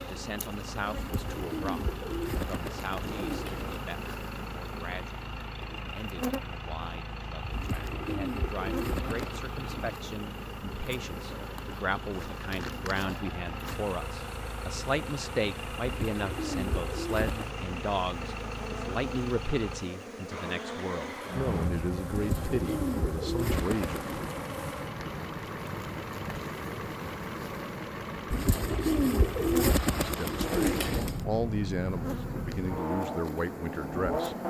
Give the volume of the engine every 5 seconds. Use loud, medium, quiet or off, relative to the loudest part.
medium, medium, medium, medium, loud, loud, loud.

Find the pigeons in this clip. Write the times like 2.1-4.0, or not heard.
0.9-3.8, 7.5-9.4, 15.8-17.4, 22.1-24.4, 28.3-31.2.